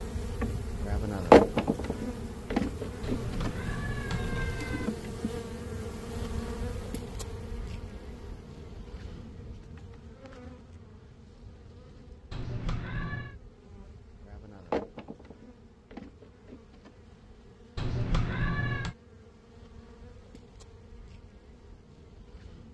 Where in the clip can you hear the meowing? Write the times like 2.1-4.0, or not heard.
3.0-4.9, 12.3-13.3, 17.8-18.9.